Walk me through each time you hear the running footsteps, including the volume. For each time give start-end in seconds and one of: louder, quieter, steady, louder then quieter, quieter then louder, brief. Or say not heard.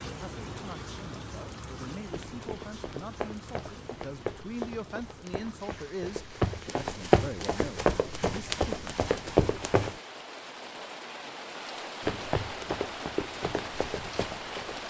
2.0-9.9 louder
12.0-14.8 brief.